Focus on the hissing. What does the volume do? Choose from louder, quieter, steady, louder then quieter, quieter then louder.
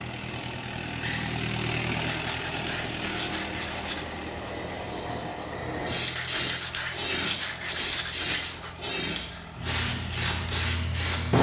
louder.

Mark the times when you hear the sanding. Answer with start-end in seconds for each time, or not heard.
2.0-4.1, 6.2-8.8.